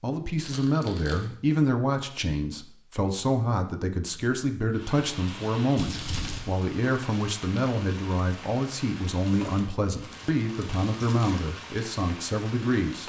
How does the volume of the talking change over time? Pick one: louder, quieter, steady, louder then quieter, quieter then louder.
steady.